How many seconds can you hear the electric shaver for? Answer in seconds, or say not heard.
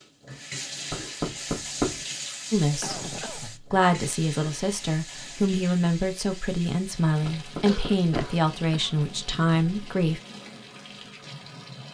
not heard.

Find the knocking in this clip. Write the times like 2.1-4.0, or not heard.
0.9-2.0, 7.2-8.3.